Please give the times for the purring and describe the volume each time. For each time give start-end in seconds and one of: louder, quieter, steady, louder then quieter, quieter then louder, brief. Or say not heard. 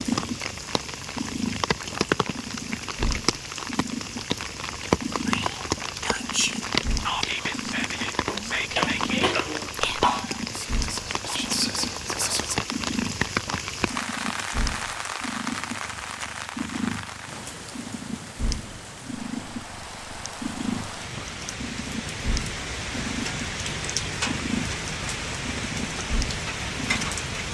0.0-27.1 steady.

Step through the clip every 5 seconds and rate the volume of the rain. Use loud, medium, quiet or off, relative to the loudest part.
loud, loud, loud, medium, loud, loud.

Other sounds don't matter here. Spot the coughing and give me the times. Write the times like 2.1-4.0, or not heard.
8.2-10.4.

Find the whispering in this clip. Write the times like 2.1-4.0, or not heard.
5.2-12.6.